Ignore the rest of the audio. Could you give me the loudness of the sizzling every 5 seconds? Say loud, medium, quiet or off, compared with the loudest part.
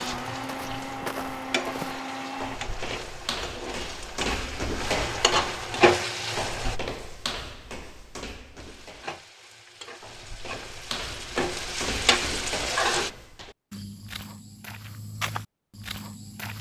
medium, loud, loud, off.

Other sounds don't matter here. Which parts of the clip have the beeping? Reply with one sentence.
The beeping can't be heard in this clip.